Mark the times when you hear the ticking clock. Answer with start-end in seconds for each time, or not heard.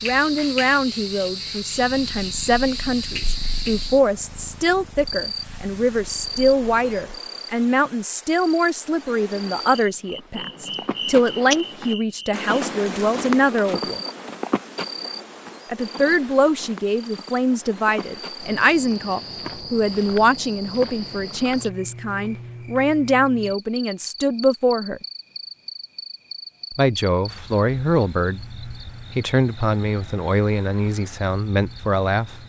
not heard.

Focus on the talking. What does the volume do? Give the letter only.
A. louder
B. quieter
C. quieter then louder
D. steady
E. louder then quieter
D.